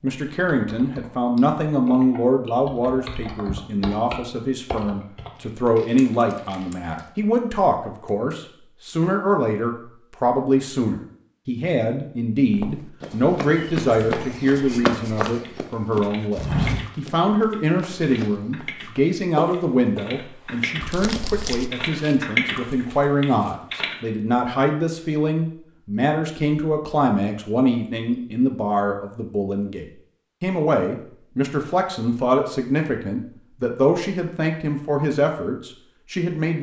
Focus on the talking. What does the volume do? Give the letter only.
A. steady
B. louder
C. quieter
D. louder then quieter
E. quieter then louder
A.